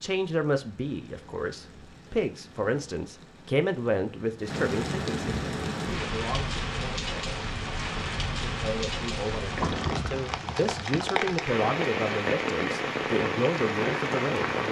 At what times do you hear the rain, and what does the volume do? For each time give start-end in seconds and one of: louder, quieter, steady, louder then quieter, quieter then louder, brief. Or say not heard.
0.0-14.6 louder.